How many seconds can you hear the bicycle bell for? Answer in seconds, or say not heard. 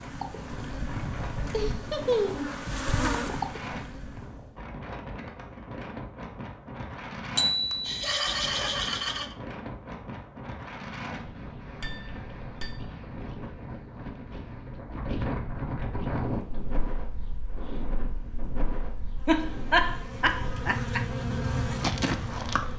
2 s.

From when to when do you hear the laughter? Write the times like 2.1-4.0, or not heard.
1.5-2.5, 7.8-9.3, 19.2-21.0.